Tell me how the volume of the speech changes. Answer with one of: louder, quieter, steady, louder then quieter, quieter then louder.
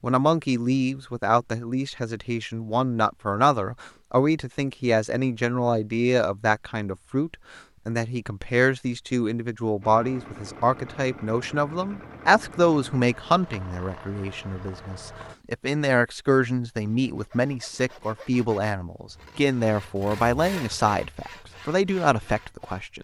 steady.